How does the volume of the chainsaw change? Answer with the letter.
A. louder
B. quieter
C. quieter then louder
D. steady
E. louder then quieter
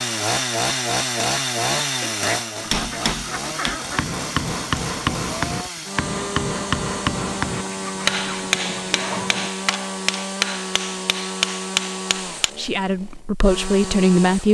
B.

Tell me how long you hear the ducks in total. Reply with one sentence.
You can hear the ducks for 4 seconds altogether.